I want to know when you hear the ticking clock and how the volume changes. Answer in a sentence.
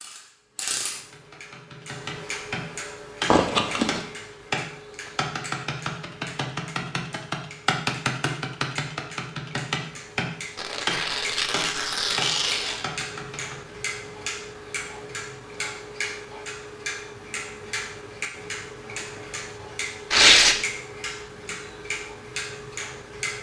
The ticking clock can be heard from 0.0 to 23.3 s, getting quieter then louder.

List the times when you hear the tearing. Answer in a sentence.
The tearing can be heard from 3.3 to 4.0 s, from 10.6 to 12.8 s and from 20.1 to 20.6 s.